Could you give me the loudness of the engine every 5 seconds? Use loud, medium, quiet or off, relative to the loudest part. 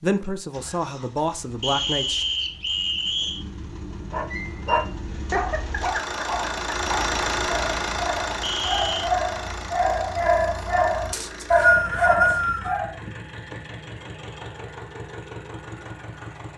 quiet, loud, medium, medium.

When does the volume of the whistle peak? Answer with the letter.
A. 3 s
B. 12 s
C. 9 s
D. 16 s
B.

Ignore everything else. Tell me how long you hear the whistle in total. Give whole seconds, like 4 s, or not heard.
4 s.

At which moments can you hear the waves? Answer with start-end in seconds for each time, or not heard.
not heard.